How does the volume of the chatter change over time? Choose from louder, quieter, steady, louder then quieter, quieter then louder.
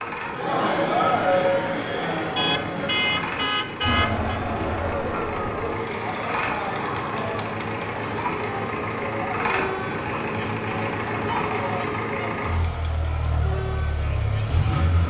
quieter.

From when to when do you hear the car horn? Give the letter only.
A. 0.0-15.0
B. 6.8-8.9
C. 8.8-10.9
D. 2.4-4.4
D.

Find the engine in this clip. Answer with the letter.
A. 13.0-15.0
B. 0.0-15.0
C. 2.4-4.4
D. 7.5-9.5
B.